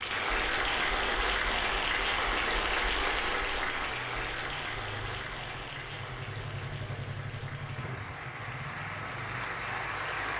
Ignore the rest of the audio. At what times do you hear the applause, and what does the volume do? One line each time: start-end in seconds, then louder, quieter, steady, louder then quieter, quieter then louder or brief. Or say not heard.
0.0-10.3 quieter then louder.